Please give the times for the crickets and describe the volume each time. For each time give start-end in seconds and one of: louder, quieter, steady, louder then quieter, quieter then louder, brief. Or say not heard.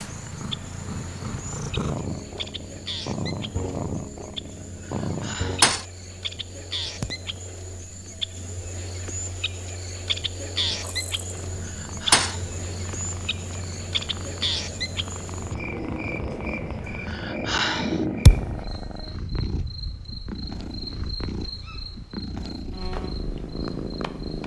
0.0-24.4 louder then quieter.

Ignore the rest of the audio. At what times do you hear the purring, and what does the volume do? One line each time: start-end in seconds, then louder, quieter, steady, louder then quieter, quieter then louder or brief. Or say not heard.
0.0-24.4 quieter then louder.